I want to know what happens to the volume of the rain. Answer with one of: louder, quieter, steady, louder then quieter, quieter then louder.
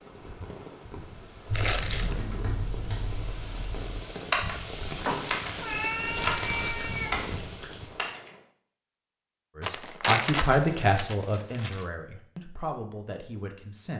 louder.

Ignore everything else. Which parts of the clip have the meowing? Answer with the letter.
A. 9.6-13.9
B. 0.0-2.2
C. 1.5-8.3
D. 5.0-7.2
D.